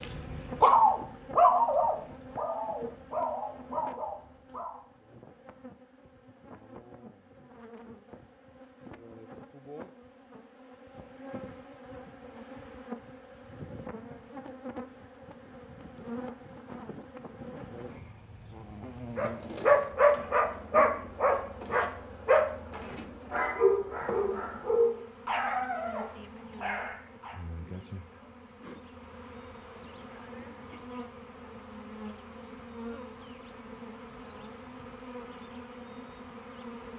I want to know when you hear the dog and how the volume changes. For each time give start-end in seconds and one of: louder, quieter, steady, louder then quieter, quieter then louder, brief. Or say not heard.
0.0-4.8 quieter
19.1-27.4 quieter.